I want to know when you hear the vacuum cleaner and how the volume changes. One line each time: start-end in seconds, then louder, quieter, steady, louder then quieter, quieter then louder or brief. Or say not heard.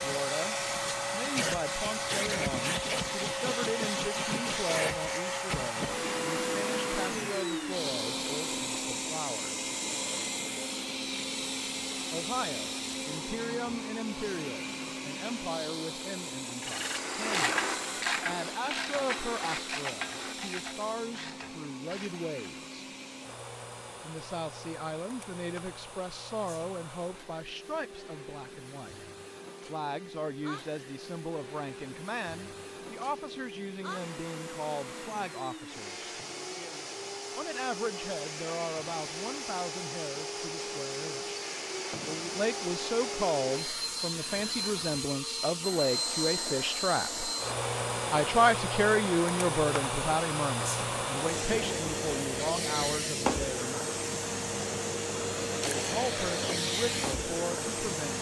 0.0-58.1 quieter then louder.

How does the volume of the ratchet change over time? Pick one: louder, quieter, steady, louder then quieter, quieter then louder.
quieter.